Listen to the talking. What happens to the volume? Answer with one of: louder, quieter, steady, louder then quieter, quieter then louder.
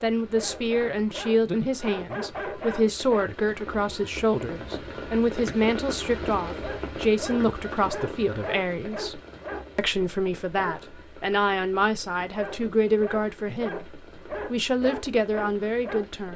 steady.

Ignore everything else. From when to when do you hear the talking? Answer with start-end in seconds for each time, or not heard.
0.0-16.3.